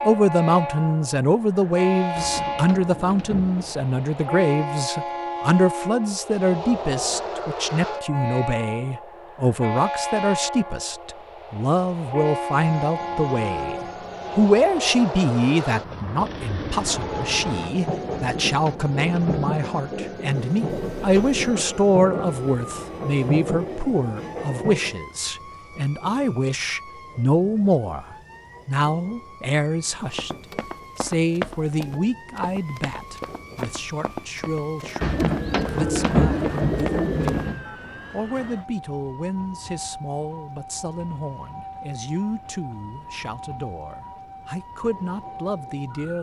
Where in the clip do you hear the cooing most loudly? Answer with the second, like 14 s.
36 s.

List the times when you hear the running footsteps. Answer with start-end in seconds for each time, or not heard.
29.9-37.5.